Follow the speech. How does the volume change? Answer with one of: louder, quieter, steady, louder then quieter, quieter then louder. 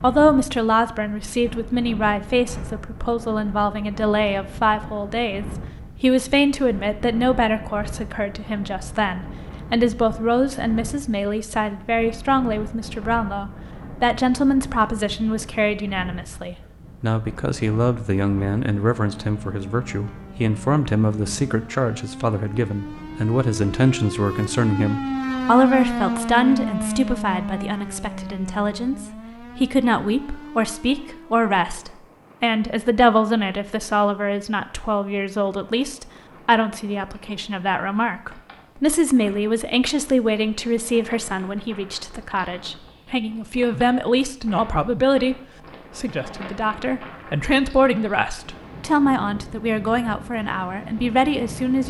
steady.